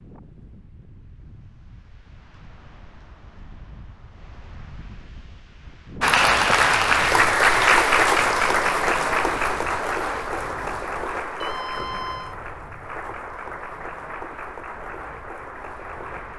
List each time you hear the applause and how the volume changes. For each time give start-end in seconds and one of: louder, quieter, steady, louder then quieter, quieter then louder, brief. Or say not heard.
6.0-16.3 quieter.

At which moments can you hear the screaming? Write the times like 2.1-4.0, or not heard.
11.4-12.3.